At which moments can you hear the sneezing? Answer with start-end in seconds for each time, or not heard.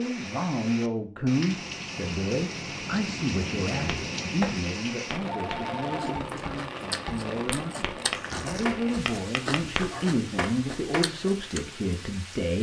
not heard.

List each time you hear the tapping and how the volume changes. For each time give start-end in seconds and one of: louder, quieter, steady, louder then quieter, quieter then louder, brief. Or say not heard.
3.9-11.2 quieter then louder.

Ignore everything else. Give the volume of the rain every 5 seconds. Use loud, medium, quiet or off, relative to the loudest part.
loud, loud, medium.